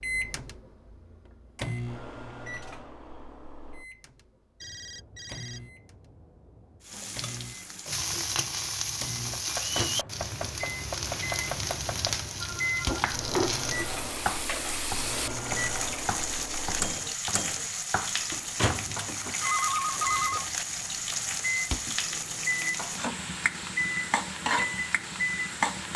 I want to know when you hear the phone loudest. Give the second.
20 s.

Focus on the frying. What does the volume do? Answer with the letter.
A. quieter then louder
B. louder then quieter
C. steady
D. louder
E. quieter
C.